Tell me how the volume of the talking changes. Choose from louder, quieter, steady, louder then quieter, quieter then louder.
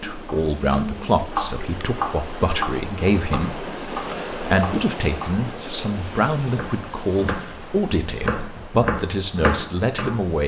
steady.